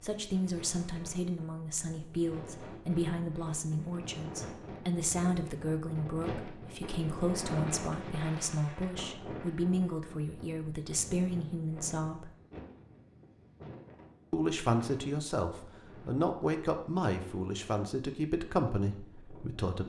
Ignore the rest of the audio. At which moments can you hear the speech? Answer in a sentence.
The speech can be heard from 0.0 to 12.3 s and from 14.3 to 19.8 s.